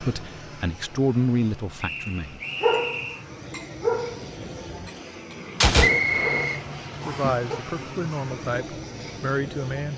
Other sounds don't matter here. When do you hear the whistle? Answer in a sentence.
You can hear the whistle from 1.8 to 3.2 s and from 5.8 to 7.3 s.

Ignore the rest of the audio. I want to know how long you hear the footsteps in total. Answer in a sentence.
You can't hear the footsteps here.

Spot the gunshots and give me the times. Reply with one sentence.
You can hear the gunshots from 5.6 to 6.5 s.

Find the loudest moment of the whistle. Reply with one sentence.
The volume of the whistle peaks at 6 seconds.